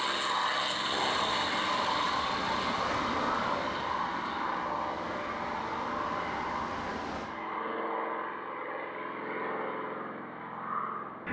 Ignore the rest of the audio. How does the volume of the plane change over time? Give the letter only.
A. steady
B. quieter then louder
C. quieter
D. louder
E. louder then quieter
C.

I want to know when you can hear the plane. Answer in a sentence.
The plane can be heard from 0.0 to 11.2 s.